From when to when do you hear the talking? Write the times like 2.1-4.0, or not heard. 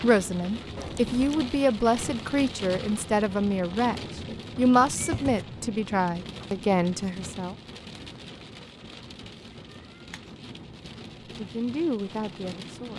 0.0-7.5, 11.3-12.9.